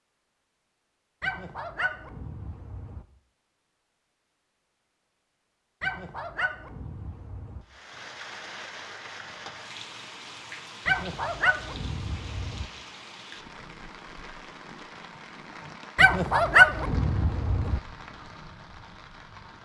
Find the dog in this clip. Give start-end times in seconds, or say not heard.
1.2-3.0, 5.8-7.7, 10.8-12.7, 15.9-17.8.